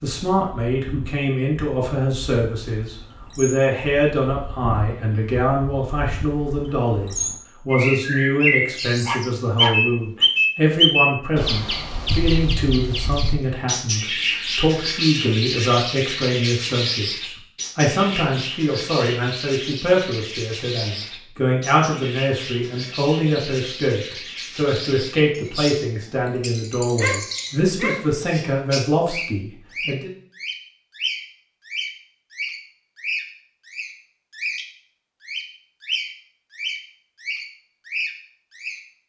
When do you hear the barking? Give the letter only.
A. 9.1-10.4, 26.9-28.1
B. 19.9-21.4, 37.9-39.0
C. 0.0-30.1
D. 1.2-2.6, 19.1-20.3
A.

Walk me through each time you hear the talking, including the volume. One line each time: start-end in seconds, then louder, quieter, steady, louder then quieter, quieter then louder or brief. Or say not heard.
0.0-30.1 steady.